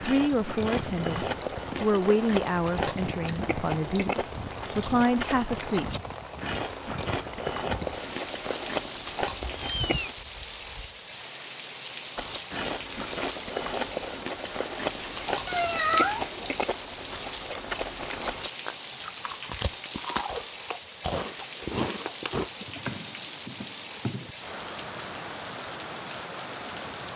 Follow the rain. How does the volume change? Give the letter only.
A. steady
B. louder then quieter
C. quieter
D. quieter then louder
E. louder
A.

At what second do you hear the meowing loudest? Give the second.
16 s.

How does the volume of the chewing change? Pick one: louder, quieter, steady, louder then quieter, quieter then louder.
steady.